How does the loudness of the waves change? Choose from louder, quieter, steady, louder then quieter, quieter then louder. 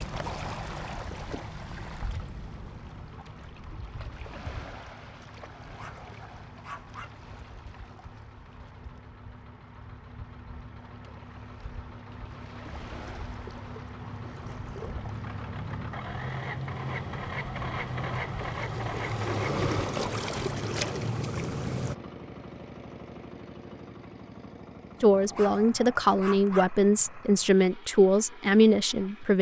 quieter then louder.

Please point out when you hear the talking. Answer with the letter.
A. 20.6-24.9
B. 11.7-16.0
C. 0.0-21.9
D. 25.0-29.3
D.